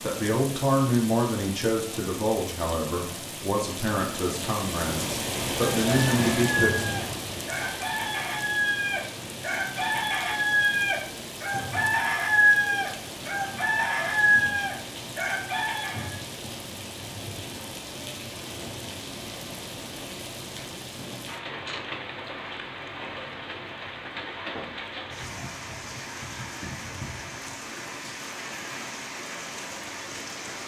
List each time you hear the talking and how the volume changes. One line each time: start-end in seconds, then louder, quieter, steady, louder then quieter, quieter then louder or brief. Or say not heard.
0.0-7.0 quieter then louder.